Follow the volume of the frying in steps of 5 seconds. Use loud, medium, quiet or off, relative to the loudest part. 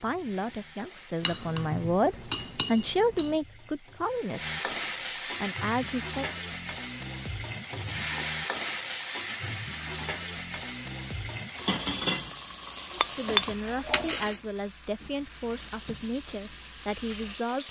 medium, loud, loud, medium.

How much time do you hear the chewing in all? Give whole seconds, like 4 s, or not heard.
not heard.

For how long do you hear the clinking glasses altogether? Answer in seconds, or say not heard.
3 s.